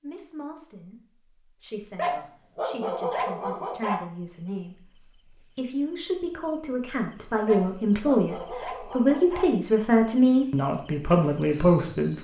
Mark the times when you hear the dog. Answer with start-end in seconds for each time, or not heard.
1.9-4.0, 7.5-9.5.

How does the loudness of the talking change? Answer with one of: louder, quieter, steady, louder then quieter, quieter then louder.
louder.